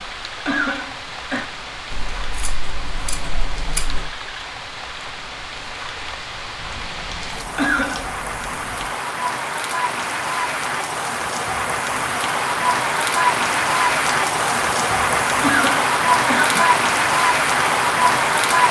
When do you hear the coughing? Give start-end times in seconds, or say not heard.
0.5-1.4, 7.5-8.2, 15.4-16.8.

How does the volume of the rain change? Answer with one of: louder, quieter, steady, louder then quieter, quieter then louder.
louder.